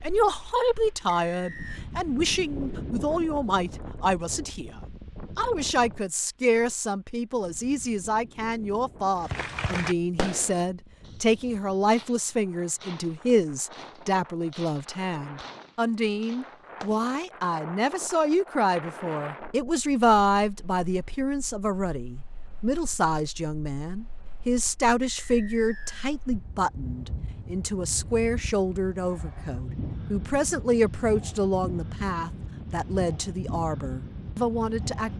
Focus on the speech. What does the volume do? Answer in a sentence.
The loudness of the speech stays about the same.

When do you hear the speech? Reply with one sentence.
You can hear the speech from 0.0 to 35.1 s.